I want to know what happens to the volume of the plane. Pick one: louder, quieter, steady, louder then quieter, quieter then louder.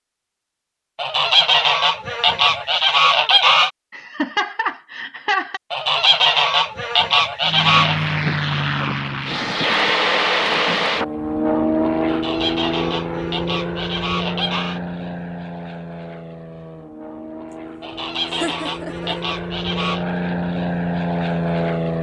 quieter then louder.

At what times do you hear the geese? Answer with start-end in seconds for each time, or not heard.
0.9-3.7, 5.7-8.0, 12.1-14.8, 17.8-20.1.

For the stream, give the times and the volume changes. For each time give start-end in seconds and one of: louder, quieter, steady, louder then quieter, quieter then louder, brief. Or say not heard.
not heard.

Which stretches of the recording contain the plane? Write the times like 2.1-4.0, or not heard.
7.4-21.9.